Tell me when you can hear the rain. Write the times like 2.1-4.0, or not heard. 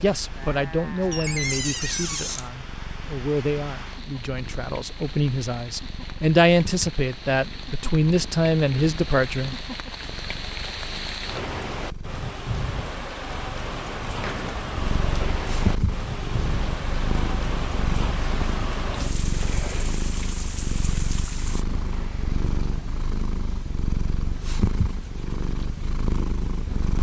0.0-21.6.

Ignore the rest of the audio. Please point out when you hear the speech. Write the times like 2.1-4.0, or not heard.
0.0-9.6.